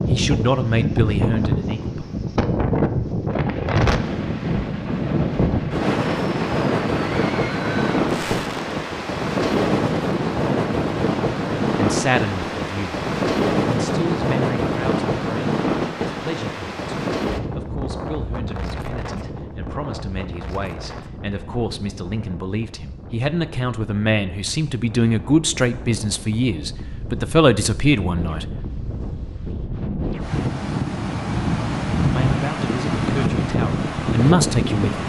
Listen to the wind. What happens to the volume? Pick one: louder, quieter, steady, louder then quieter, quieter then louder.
quieter then louder.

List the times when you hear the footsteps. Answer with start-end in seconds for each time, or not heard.
not heard.